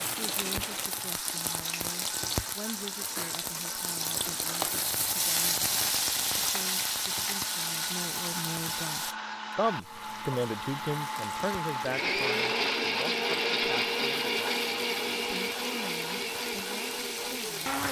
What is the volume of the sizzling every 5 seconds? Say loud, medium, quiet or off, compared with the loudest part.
loud, loud, quiet, medium.